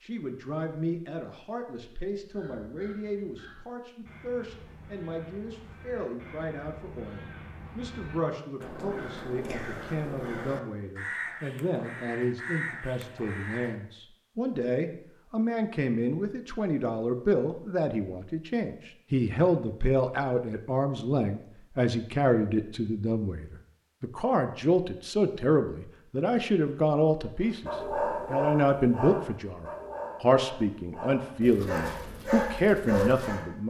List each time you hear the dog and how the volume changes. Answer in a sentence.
You can hear the dog from 27.4 to 33.5 s, getting quieter then louder.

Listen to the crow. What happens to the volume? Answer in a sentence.
The loudness of the crow goes up.